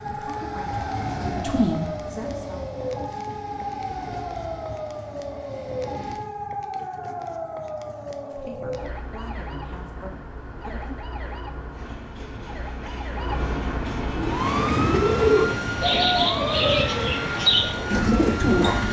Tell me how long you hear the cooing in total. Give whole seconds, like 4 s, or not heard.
5 s.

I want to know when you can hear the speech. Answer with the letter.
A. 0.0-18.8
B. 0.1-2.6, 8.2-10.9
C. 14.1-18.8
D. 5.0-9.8
B.